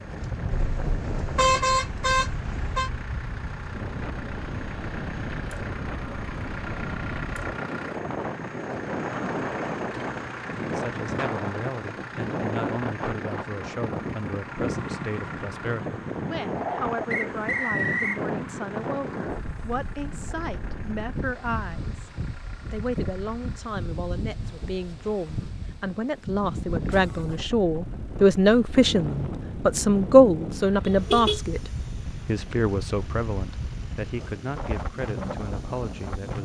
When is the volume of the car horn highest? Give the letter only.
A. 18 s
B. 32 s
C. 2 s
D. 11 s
C.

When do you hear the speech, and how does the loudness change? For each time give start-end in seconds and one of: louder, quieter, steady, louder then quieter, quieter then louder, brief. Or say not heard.
10.7-22.1 steady
22.7-36.4 louder then quieter.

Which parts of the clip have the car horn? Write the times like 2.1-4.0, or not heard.
0.5-2.9, 30.9-31.4.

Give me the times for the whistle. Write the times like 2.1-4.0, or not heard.
17.1-18.2.